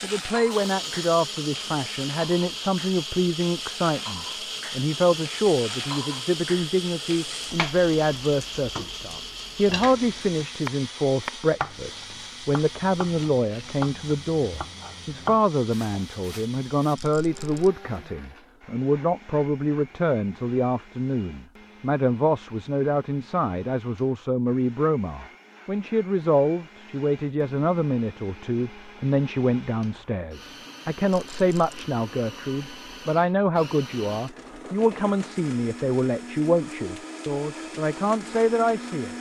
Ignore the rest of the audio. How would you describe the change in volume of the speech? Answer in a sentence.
The volume of the speech stays about the same.